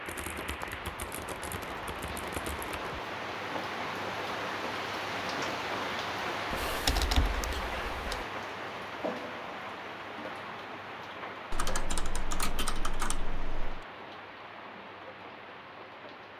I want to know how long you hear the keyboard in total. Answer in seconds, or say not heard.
7 s.